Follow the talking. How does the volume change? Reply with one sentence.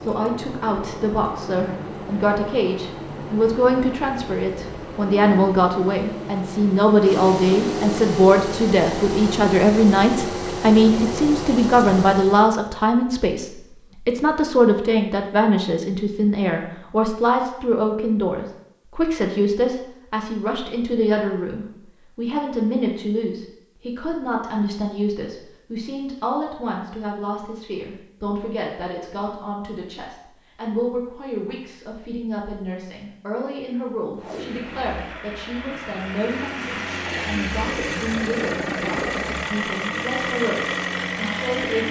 The volume of the talking goes down.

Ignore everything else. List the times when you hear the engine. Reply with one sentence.
The engine can be heard from 0.0 to 12.6 s and from 34.2 to 41.8 s.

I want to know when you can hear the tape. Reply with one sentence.
The tape can be heard from 34.1 to 34.9 s.